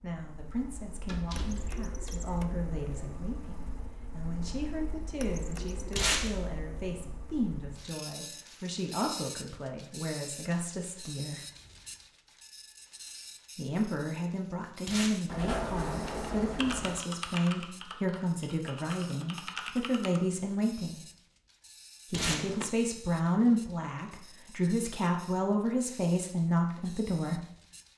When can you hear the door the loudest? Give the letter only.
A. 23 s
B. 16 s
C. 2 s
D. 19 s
B.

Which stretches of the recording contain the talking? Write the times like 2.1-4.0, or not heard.
0.0-11.4, 13.6-21.0, 22.1-27.4.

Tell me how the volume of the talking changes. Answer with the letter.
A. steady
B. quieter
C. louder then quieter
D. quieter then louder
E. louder
E.